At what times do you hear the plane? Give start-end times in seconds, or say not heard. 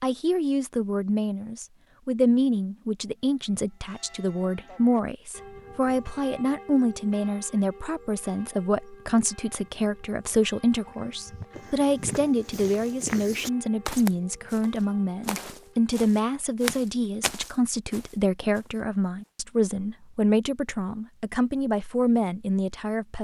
not heard.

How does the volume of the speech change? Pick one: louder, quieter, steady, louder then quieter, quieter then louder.
steady.